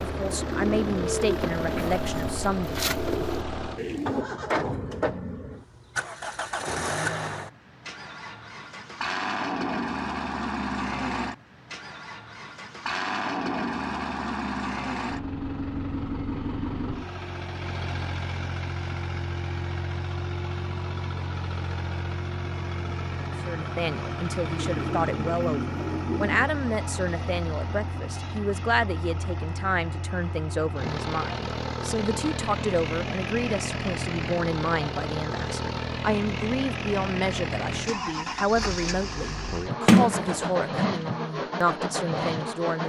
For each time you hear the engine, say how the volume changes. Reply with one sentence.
The engine can be heard from 0.0 to 42.8 s, at a steady volume.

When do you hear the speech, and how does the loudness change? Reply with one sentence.
You can hear the speech briefly from 0.0 to 2.8 s; and from 23.4 to 42.8 s, at a steady volume.